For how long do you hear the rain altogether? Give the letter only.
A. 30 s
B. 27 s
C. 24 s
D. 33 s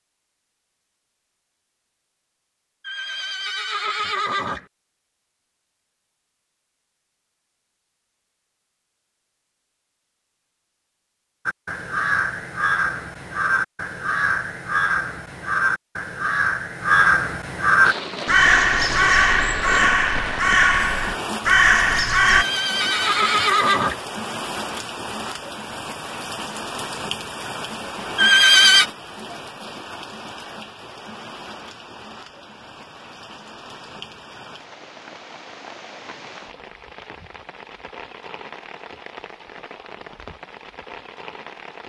C.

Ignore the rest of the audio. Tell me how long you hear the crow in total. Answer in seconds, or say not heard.
11 s.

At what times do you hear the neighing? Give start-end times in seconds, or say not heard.
2.9-4.7, 22.2-24.0, 28.1-28.9.